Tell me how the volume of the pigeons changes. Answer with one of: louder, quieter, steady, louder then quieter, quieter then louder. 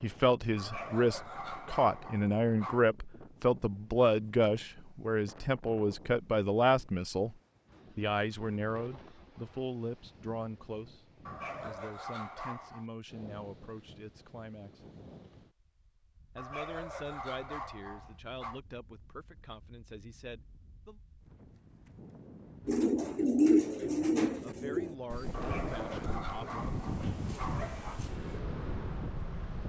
quieter.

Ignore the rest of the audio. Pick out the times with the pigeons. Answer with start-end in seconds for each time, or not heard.
22.6-28.4.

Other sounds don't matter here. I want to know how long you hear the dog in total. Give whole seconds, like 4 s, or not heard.
9 s.